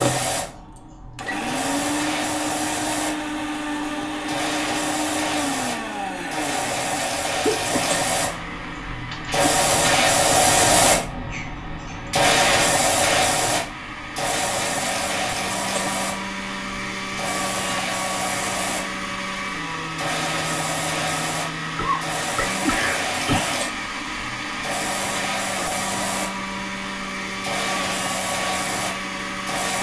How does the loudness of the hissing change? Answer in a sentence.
The volume of the hissing goes up, then down.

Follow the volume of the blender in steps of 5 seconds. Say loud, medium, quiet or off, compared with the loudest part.
loud, loud, medium, loud, loud, loud.